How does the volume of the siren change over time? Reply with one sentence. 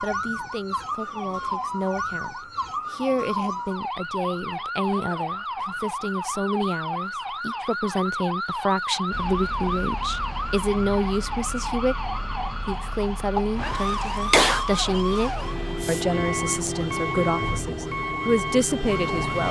The volume of the siren stays about the same.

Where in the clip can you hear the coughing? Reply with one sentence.
You can hear the coughing from 13.3 to 14.7 s.